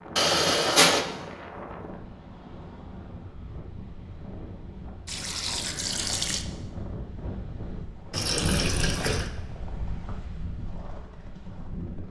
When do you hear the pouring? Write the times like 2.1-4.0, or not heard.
0.1-1.1, 5.0-6.5, 8.1-9.3.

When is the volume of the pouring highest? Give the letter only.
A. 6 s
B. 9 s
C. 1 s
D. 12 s
C.